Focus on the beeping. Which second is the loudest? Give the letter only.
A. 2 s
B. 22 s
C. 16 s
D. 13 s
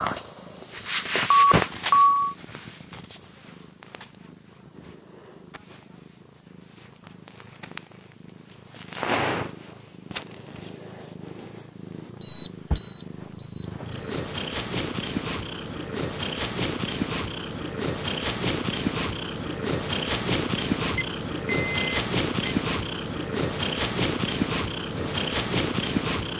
A.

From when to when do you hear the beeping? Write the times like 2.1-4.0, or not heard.
1.3-2.4, 12.2-13.9, 20.9-22.6.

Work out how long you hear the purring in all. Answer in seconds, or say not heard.
26 s.